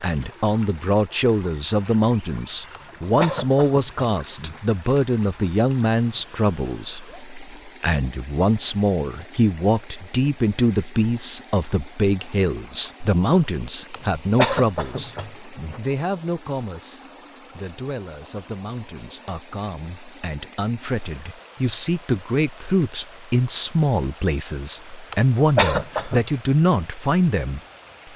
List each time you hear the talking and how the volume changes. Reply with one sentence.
You can hear the talking from 0.0 to 27.6 s, getting quieter then louder.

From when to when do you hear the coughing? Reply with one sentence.
You can hear the coughing from 2.7 to 4.6 s, from 13.9 to 15.8 s and from 25.1 to 26.2 s.